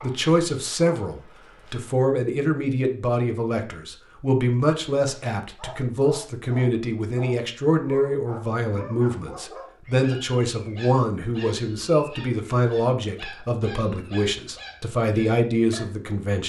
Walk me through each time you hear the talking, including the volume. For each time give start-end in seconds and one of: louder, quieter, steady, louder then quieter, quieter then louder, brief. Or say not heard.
0.0-16.4 steady.